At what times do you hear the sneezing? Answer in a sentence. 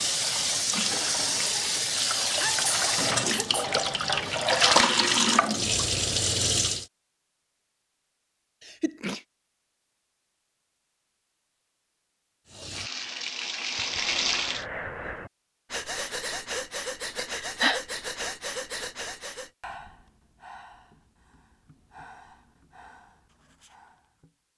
You can hear the sneezing from 2.2 to 3.7 s, from 8.6 to 9.2 s and from 17.1 to 17.8 s.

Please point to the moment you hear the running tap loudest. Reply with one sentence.
The volume of the running tap peaks at 5 seconds.